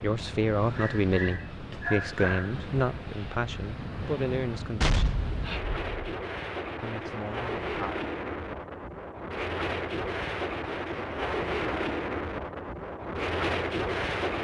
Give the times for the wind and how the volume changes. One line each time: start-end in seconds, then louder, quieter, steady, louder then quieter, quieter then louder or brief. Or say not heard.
0.0-14.4 louder.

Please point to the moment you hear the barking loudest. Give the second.
2 s.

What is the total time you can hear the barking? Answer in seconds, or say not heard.
2 s.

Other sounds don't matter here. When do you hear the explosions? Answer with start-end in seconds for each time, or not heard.
4.8-6.0.